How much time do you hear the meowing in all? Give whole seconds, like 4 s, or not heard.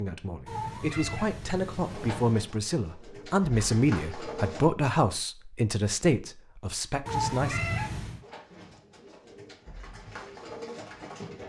3 s.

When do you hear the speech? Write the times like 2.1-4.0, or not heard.
0.0-7.6.